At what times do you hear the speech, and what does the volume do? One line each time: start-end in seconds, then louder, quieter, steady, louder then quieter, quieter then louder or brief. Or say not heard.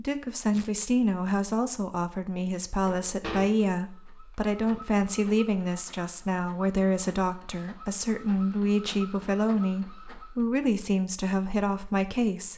0.0-12.5 steady.